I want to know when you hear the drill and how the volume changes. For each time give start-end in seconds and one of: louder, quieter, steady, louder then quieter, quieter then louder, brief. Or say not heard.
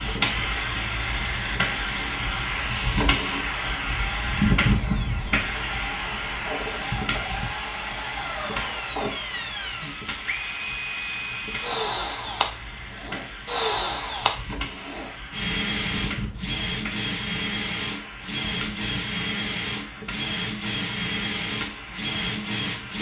0.0-22.9 louder.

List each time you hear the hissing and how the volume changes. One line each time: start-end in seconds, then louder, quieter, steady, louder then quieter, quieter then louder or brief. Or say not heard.
0.0-22.9 quieter.